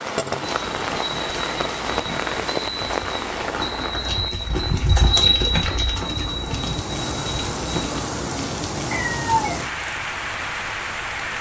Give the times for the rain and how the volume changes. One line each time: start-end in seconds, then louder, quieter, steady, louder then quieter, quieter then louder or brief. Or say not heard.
0.0-11.3 quieter then louder.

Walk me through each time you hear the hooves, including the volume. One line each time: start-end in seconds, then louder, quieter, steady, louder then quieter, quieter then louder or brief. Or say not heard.
0.4-8.0 louder then quieter.